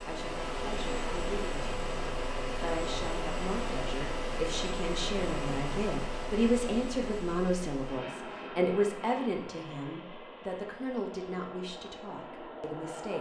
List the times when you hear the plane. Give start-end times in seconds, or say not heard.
0.0-13.1.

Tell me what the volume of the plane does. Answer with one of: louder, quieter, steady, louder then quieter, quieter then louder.
quieter.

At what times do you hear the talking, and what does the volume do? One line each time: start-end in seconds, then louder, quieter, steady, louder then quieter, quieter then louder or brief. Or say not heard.
0.1-13.1 louder then quieter.